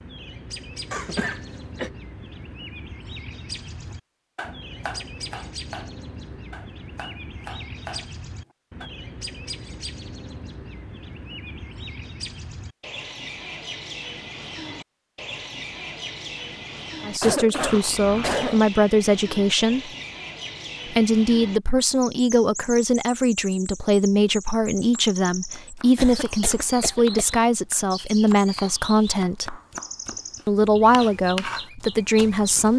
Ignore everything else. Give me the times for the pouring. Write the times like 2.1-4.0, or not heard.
not heard.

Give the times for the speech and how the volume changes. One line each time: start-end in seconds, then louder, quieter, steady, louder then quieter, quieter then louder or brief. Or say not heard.
17.1-19.9 brief
20.9-29.6 steady
30.4-32.7 brief.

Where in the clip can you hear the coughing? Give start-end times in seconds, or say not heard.
0.9-1.9, 17.2-18.6, 25.9-27.4.